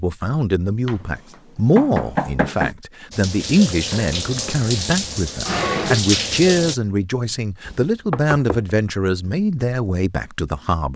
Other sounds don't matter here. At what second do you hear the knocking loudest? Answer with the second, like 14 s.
2 s.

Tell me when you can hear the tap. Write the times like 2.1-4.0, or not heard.
3.1-6.8.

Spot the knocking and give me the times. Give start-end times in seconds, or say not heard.
0.8-2.8, 7.7-8.7.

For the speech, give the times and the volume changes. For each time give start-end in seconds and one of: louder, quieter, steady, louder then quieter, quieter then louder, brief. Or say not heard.
0.0-10.9 steady.